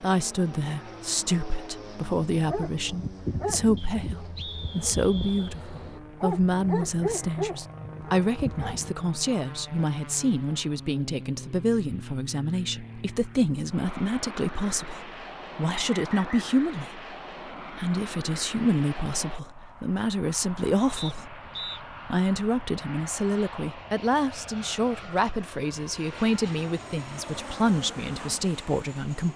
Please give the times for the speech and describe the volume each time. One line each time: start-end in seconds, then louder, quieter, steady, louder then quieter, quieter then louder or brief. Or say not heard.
0.0-21.4 steady
22.1-29.3 steady.